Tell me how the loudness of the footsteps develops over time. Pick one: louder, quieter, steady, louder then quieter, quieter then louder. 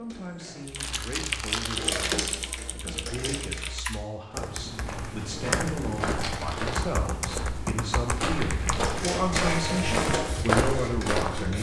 louder.